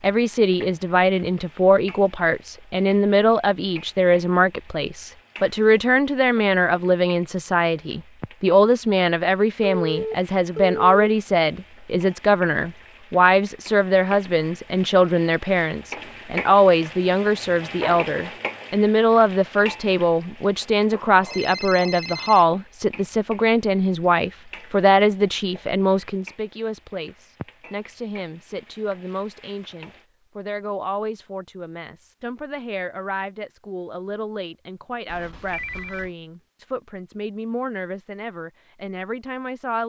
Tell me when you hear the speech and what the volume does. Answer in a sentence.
You can hear the speech from 0.0 to 39.8 s, getting quieter.